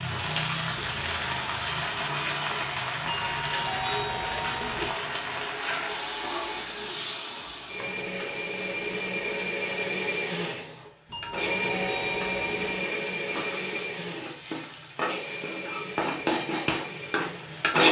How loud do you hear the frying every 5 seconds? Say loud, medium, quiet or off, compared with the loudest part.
loud, medium, quiet, loud.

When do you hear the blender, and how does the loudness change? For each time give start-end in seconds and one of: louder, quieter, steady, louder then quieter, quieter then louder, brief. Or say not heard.
0.0-17.7 louder then quieter.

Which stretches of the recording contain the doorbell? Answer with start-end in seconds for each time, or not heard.
3.0-4.9, 11.1-12.9.